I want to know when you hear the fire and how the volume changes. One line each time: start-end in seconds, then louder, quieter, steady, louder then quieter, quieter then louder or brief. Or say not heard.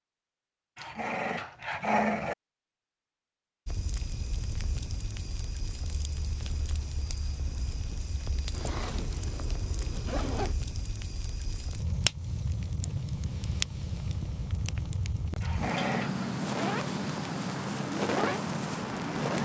3.6-19.3 louder.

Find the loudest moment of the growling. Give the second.
2 s.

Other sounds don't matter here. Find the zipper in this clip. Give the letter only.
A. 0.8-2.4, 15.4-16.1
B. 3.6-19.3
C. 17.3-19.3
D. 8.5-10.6
D.